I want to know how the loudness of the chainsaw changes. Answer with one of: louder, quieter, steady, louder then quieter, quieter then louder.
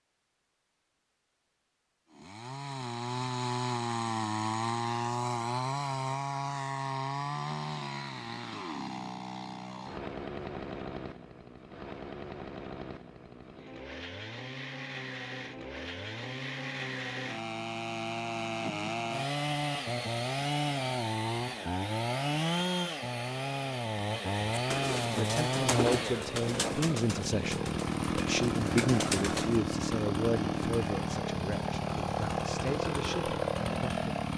quieter then louder.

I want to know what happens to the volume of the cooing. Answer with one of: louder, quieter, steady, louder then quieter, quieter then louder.
quieter then louder.